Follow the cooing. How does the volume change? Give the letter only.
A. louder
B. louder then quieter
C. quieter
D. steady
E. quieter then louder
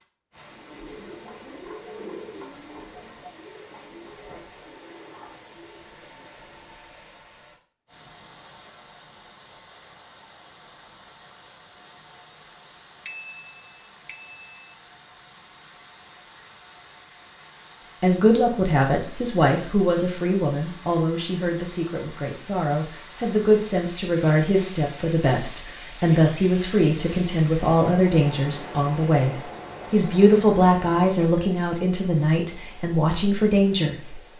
C.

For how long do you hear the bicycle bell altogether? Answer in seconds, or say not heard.
2 s.